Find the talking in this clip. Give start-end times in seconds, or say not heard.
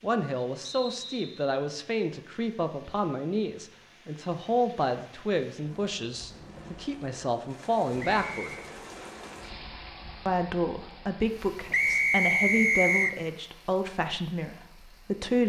0.0-8.6, 10.2-15.4.